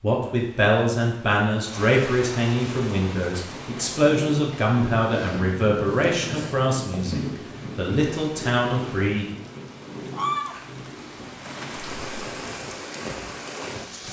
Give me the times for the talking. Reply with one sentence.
You can hear the talking from 0.0 to 9.2 s.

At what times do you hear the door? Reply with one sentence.
You can't hear the door here.